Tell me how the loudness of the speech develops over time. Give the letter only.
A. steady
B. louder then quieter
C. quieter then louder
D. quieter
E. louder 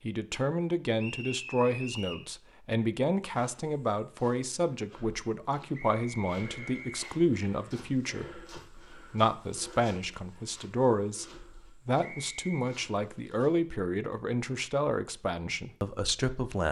A.